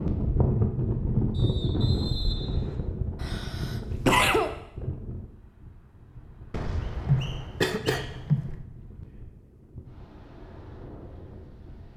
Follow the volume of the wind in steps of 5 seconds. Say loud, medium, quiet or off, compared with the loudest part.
loud, quiet, quiet.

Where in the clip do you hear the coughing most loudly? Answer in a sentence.
The volume of the coughing peaks at 4 seconds.